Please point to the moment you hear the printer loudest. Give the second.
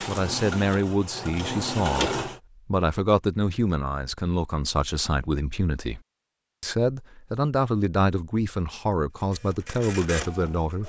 2 s.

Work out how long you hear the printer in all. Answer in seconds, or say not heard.
4 s.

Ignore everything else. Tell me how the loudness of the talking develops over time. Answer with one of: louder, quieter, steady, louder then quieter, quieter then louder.
steady.